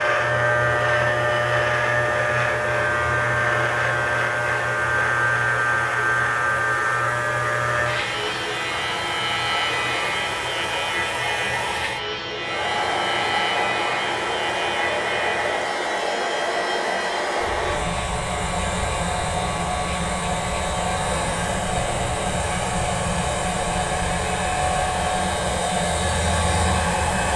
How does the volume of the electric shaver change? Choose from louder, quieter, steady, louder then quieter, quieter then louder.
quieter.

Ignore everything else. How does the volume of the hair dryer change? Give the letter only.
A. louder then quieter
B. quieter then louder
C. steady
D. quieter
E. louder
E.